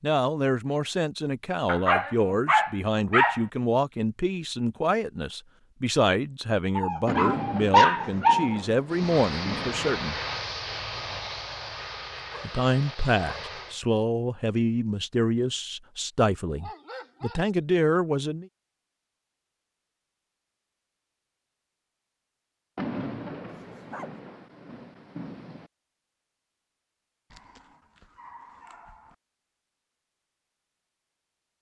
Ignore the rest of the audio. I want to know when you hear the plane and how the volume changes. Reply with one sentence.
You can hear the plane from 8.8 to 13.8 s, getting quieter.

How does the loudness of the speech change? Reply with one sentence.
The loudness of the speech stays about the same.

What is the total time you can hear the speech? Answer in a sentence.
The speech can be heard for 16 seconds in total.